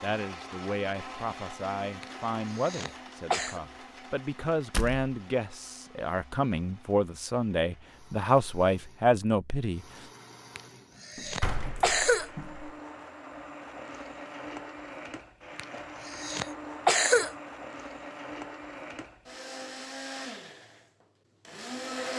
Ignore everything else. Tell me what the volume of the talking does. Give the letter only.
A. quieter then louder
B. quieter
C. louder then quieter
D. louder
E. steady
D.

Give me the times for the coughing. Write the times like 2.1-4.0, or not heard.
2.0-3.6, 10.6-12.3, 15.6-17.3.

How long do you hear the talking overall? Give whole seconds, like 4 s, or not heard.
10 s.